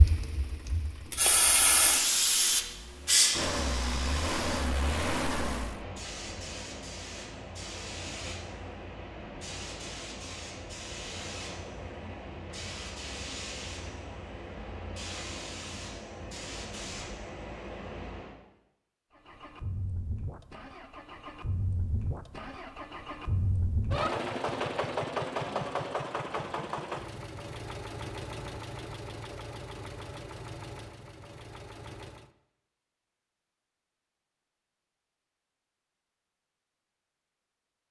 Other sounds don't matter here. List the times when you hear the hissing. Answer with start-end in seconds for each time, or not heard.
0.0-18.3.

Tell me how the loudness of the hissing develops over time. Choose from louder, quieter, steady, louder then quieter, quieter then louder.
quieter.